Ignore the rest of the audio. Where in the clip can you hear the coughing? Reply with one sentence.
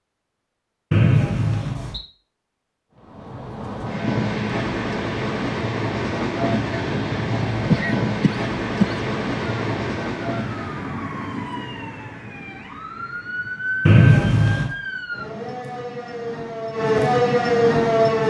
You can hear the coughing from 7.7 to 9.0 s.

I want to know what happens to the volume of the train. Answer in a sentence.
The volume of the train stays about the same.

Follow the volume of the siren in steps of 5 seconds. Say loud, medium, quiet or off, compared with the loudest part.
off, off, medium, loud.